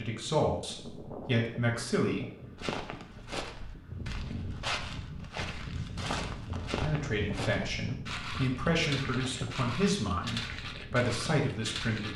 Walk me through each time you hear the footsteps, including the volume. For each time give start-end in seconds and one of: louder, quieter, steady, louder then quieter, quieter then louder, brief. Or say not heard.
2.5-12.1 steady.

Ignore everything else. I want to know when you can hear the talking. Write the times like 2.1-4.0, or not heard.
0.0-2.3, 6.8-12.1.